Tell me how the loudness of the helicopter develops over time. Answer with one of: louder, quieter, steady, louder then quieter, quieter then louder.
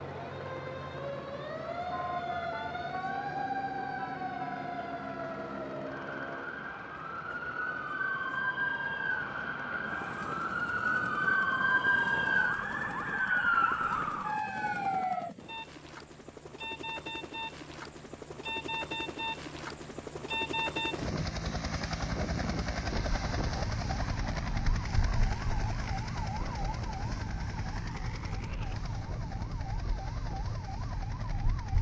louder then quieter.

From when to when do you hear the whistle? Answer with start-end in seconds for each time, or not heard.
not heard.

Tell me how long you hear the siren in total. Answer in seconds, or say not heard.
24 s.